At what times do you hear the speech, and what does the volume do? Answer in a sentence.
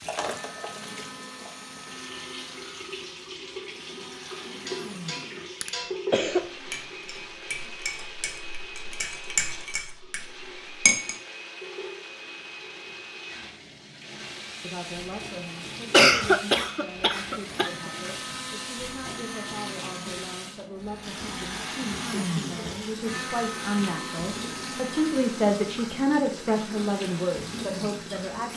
The speech can be heard from 14.6 to 28.5 s, getting louder.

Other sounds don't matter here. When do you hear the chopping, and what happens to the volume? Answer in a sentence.
The chopping can't be heard in this clip.